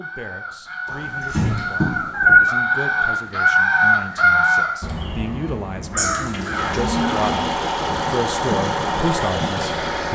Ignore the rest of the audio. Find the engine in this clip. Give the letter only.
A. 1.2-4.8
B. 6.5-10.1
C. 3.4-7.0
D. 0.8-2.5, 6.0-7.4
B.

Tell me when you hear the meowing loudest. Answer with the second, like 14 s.
2 s.